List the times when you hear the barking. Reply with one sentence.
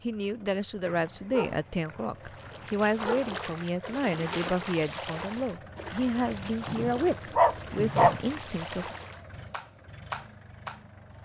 You can hear the barking from 0.8 to 3.2 s and from 6.7 to 8.2 s.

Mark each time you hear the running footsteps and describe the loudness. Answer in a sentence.
You can't hear the running footsteps here.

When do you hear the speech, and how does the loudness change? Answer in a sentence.
You can hear the speech from 0.0 to 8.9 s, at a steady volume.